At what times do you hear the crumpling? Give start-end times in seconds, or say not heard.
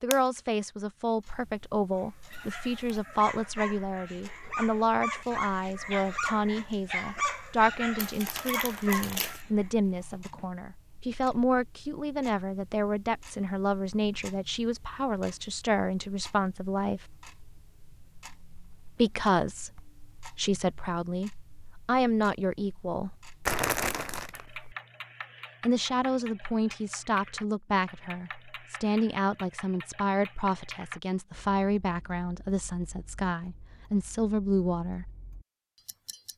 8.0-9.4, 23.4-24.8.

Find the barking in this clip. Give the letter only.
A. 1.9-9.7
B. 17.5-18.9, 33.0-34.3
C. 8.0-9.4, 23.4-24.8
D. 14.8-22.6
A.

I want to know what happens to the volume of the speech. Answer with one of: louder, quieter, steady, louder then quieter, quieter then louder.
steady.